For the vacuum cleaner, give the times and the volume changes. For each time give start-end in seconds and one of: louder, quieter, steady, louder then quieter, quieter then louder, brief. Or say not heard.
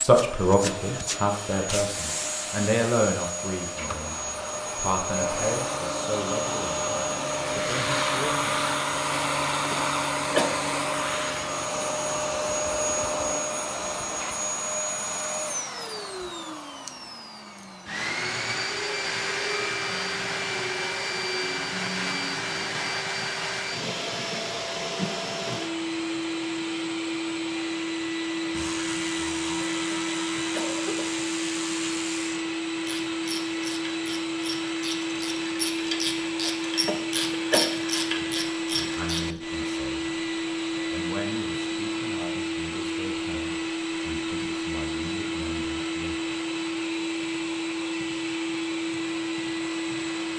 0.0-50.3 steady.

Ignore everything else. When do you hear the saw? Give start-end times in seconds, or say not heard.
not heard.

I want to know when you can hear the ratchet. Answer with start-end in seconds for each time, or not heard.
28.5-39.3.